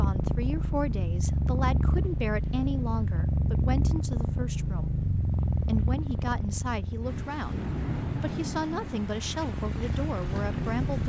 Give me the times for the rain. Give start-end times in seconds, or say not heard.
0.0-11.0.